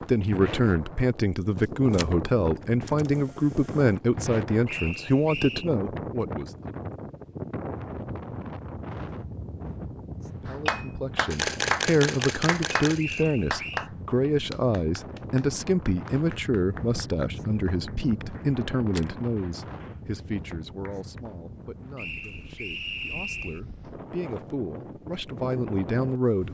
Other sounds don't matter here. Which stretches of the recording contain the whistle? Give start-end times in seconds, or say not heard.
4.7-5.7, 12.9-13.9, 21.9-23.6.